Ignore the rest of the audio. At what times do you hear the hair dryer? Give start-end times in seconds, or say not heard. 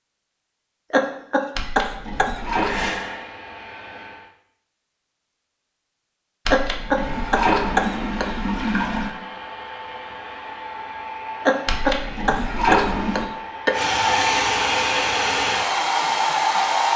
2.5-4.3, 6.9-16.9.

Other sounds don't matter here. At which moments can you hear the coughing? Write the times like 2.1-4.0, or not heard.
0.9-2.4, 6.5-8.3, 11.4-13.8.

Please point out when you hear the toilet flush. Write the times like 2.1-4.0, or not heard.
1.6-3.0, 6.5-9.1, 11.7-13.3.